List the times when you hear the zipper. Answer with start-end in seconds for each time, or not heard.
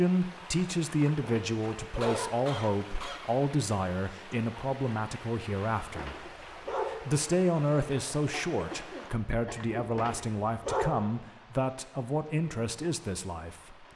not heard.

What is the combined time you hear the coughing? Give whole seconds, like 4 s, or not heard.
3 s.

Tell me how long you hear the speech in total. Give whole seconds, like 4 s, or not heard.
14 s.